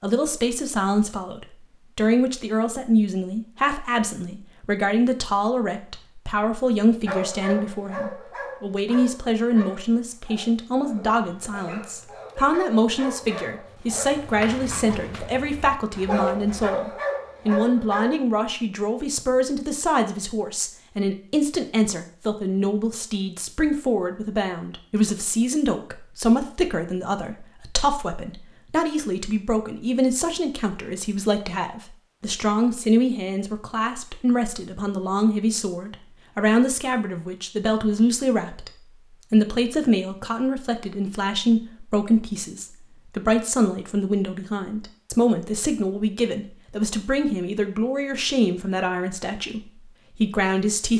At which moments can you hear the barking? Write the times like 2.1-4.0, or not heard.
7.0-18.2.